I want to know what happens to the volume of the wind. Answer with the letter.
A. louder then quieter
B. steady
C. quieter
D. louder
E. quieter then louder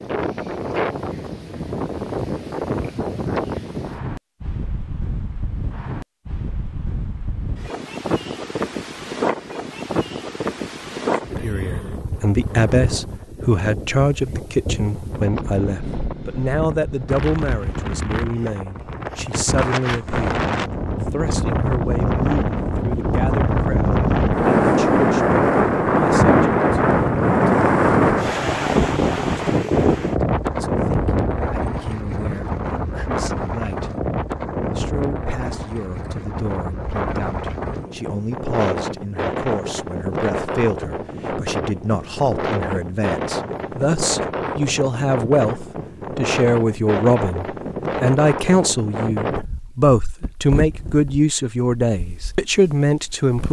A.